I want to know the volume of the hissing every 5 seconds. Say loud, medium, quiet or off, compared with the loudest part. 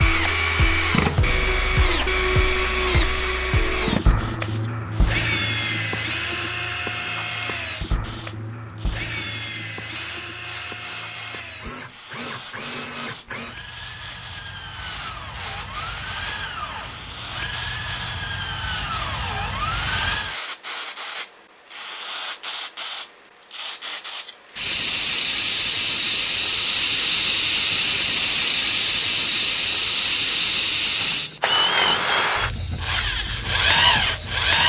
quiet, quiet, quiet, quiet, medium, loud, medium.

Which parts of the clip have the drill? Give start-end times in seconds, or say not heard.
0.0-20.4, 31.0-34.6.